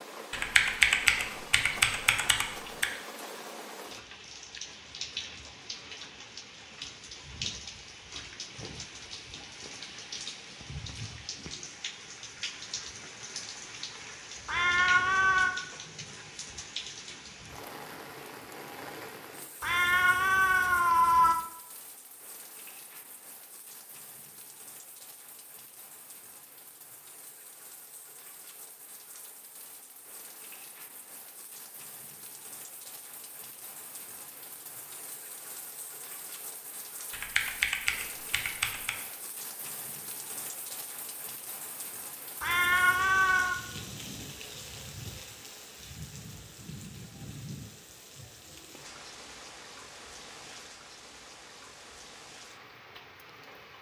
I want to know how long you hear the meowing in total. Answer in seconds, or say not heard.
4 s.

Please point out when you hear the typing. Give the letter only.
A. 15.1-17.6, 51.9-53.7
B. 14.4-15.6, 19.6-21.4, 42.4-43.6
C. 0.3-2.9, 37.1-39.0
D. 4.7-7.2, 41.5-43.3
C.